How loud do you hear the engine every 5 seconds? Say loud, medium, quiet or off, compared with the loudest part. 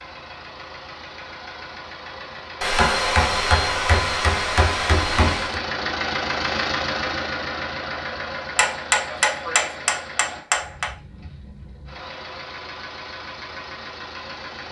medium, loud, medium.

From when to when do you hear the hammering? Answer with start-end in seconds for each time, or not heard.
2.6-5.6, 8.6-10.9.